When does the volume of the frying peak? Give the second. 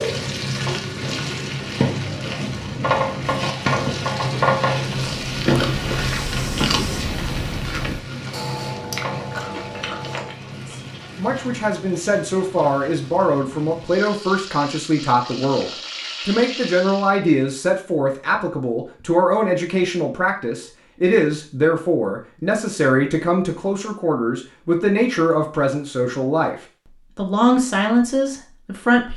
4 s.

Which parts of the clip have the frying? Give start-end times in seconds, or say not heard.
0.0-17.2.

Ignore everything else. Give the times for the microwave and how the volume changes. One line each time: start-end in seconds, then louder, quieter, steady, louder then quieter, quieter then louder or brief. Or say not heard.
not heard.